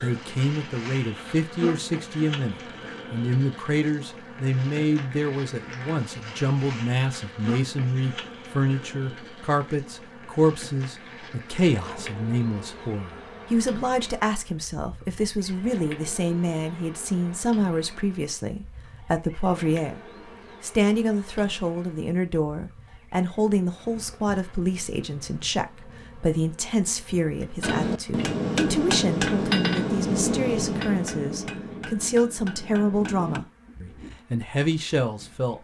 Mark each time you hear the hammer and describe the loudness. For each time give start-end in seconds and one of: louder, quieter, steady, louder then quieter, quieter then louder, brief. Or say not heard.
27.6-33.4 quieter.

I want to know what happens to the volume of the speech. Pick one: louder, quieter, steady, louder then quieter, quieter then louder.
steady.